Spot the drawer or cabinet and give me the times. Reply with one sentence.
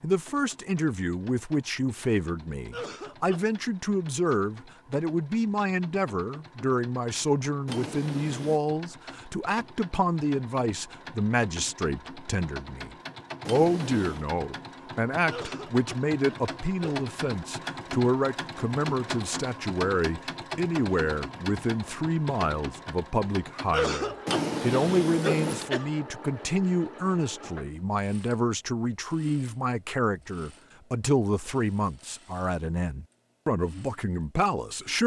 The drawer or cabinet can be heard from 7.7 to 8.6 s, from 13.4 to 14.2 s and from 24.2 to 25.7 s.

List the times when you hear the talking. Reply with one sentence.
You can hear the talking from 0.0 to 35.0 s.